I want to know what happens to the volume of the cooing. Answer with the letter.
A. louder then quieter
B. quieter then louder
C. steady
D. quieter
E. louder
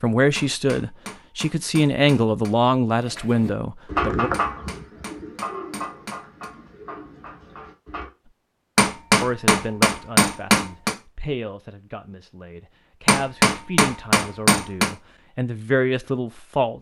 D.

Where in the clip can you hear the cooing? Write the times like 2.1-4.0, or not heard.
3.0-8.1.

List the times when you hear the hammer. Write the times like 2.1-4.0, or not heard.
0.3-2.5, 4.3-6.5, 8.8-10.9, 13.1-14.9.